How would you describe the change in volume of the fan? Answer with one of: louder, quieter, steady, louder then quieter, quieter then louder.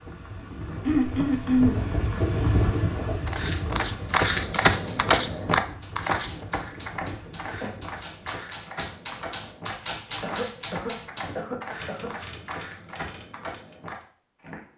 louder then quieter.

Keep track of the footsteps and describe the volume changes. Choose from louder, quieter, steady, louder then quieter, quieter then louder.
quieter.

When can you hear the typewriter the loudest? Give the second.
10 s.